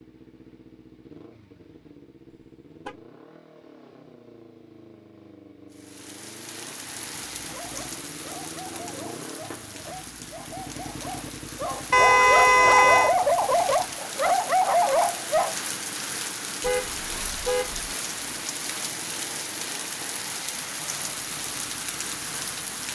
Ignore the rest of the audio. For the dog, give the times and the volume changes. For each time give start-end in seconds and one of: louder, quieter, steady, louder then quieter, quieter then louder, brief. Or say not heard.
7.5-15.6 louder.